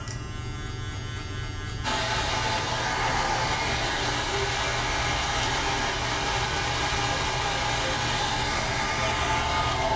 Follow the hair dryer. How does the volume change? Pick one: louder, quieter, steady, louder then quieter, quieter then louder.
steady.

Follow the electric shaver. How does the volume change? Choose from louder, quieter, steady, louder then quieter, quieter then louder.
steady.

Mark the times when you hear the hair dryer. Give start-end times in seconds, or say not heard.
1.8-9.9.